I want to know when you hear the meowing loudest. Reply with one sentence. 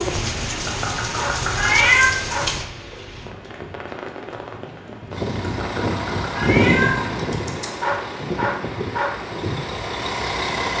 The volume of the meowing peaks at 2 seconds.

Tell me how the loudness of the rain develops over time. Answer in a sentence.
The loudness of the rain goes down.